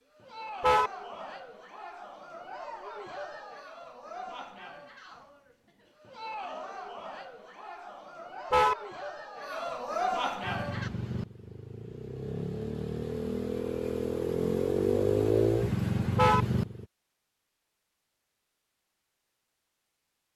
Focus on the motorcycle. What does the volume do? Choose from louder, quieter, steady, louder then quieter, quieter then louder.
louder.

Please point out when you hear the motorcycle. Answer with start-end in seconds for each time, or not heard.
10.4-16.9.